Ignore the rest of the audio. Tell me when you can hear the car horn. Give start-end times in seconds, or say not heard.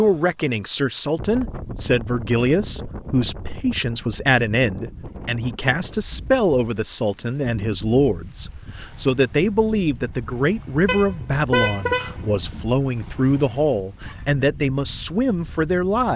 10.8-12.2.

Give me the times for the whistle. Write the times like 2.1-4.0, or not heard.
not heard.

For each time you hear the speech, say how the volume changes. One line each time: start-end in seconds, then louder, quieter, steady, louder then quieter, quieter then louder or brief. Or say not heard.
0.0-16.1 steady.